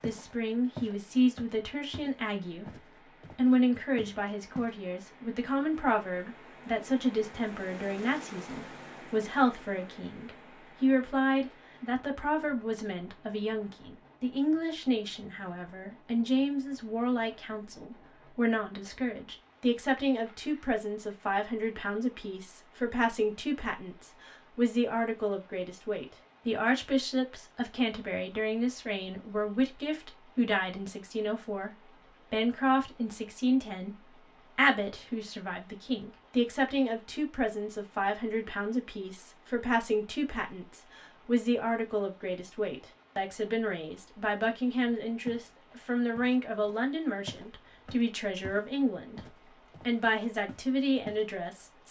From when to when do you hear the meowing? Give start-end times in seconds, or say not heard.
not heard.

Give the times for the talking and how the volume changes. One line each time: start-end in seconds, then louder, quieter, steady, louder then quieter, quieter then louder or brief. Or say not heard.
0.0-49.2 steady
49.8-51.8 brief.